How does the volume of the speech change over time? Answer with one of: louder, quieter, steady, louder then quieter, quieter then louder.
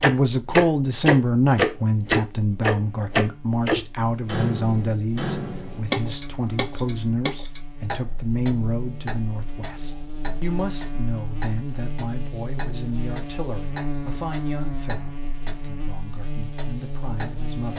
quieter.